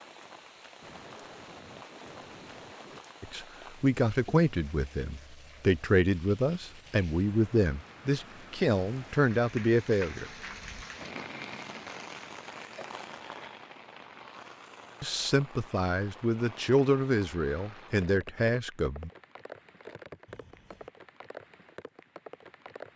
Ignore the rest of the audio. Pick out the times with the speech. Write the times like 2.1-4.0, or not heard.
3.2-10.3, 15.0-19.1.